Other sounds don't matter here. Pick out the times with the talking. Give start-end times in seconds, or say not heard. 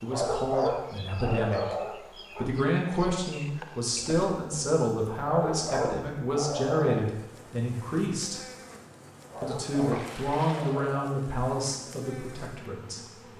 0.0-1.8, 2.4-8.4, 9.4-13.3.